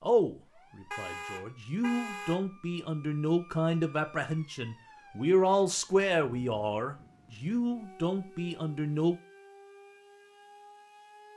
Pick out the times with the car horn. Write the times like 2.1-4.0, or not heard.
0.9-2.4.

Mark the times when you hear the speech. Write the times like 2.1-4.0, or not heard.
0.0-9.2.